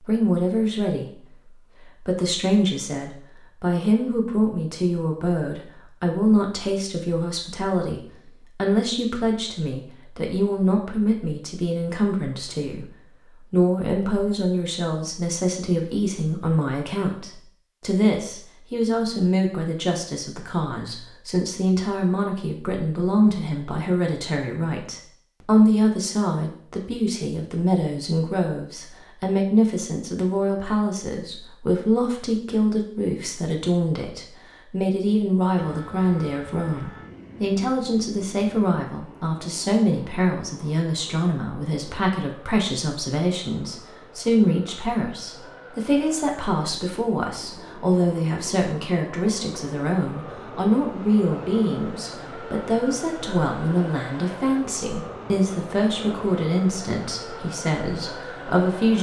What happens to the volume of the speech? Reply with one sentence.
The volume of the speech stays about the same.